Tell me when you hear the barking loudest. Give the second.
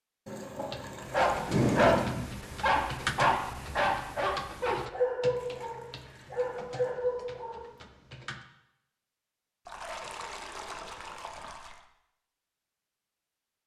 2 s.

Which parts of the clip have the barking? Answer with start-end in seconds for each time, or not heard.
1.1-7.7.